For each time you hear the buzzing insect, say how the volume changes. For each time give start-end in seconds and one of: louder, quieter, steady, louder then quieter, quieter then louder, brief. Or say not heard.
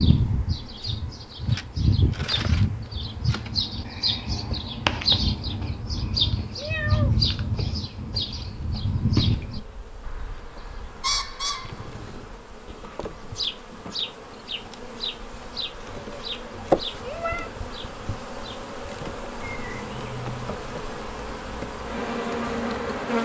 0.0-23.2 quieter then louder.